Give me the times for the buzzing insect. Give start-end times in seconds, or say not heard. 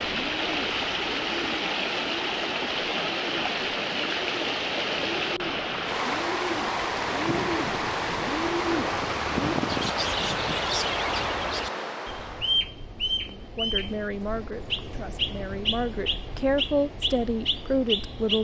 not heard.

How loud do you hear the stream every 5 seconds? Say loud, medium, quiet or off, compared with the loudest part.
loud, loud, loud, off.